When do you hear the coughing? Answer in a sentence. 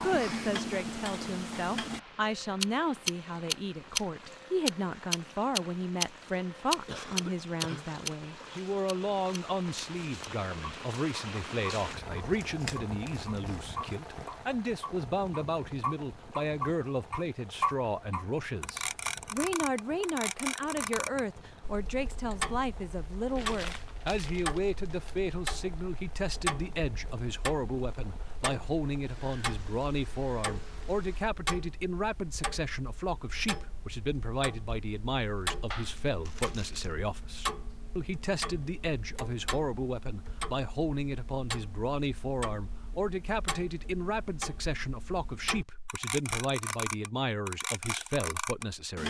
The coughing can be heard from 6.8 to 8.0 s.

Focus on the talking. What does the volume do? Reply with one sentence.
The loudness of the talking stays about the same.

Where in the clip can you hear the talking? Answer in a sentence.
You can hear the talking from 0.0 to 49.0 s.